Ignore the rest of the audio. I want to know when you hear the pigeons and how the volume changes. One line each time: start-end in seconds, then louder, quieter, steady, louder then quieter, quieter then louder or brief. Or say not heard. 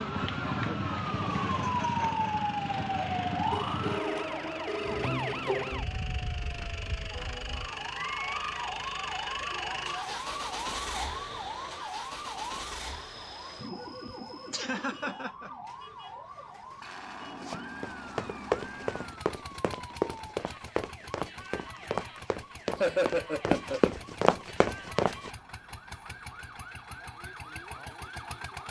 not heard.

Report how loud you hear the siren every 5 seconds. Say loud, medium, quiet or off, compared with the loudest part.
loud, medium, medium, quiet, quiet, quiet.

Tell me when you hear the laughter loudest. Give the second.
23 s.